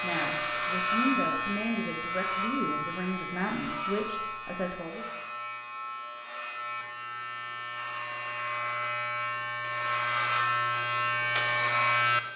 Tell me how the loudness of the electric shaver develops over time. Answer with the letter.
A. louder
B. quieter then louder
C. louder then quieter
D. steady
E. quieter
B.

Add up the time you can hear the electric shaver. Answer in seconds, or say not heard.
12 s.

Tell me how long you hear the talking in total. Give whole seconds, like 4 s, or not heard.
5 s.